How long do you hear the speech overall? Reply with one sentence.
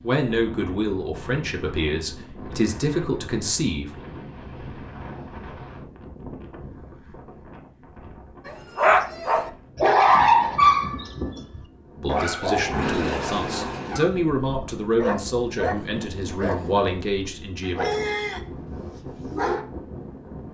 You can hear the speech for 10 seconds altogether.